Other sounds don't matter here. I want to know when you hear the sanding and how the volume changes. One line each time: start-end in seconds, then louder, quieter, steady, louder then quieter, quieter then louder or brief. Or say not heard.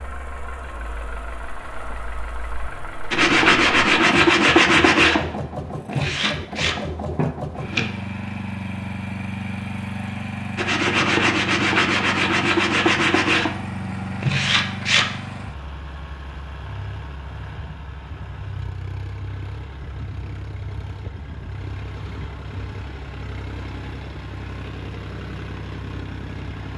3.1-7.9 quieter
10.6-15.1 steady.